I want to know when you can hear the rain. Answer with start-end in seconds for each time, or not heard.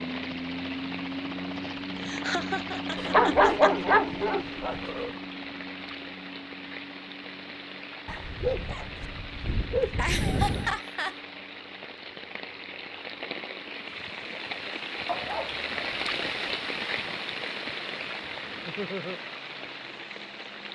0.0-20.7.